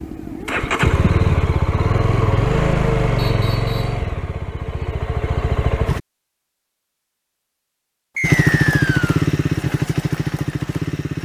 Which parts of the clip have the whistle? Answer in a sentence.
The whistle can be heard from 3.1 to 4.0 s and from 8.2 to 9.2 s.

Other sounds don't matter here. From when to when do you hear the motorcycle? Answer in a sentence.
The motorcycle can be heard from 0.0 to 6.0 s and from 8.2 to 11.2 s.